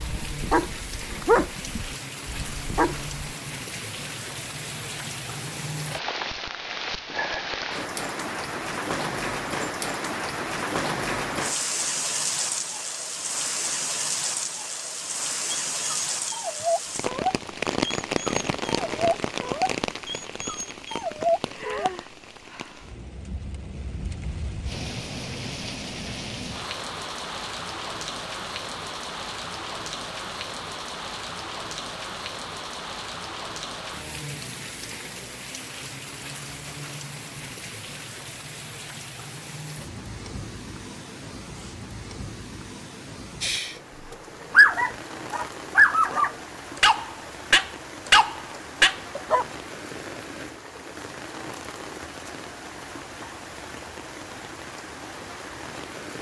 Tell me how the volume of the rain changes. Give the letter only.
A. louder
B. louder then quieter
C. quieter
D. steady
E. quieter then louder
C.